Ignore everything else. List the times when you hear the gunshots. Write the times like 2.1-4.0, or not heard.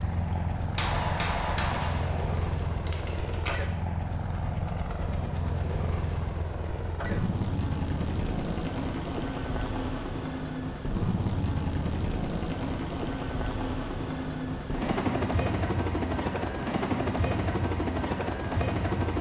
0.3-3.5.